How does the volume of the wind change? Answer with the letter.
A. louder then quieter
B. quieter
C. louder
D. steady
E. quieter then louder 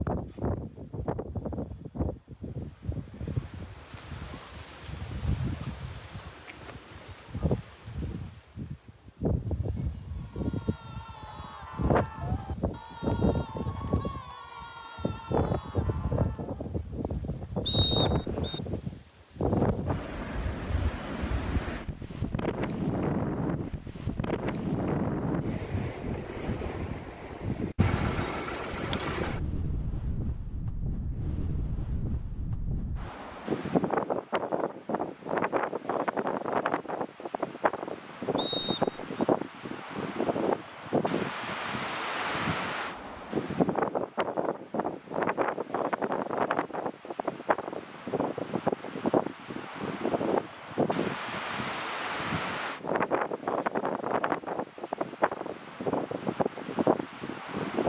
C.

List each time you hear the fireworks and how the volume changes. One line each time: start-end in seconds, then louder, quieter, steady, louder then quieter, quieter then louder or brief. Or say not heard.
not heard.